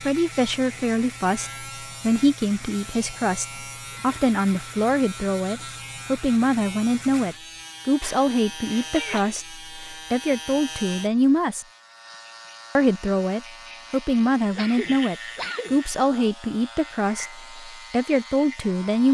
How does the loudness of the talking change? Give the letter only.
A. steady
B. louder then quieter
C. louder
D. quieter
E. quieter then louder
A.